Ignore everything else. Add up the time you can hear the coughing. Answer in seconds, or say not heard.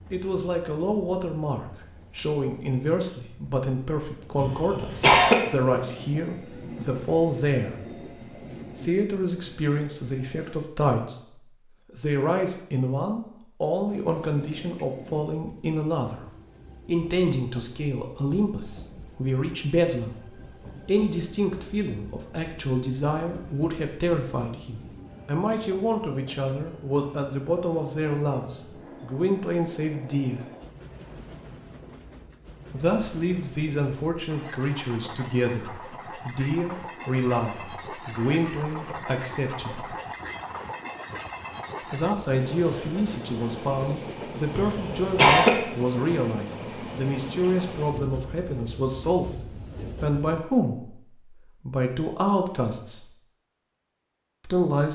2 s.